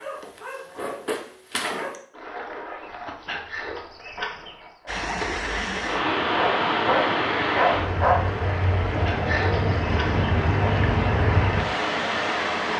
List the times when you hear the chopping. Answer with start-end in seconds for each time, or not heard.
not heard.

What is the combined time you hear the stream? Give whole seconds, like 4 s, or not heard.
8 s.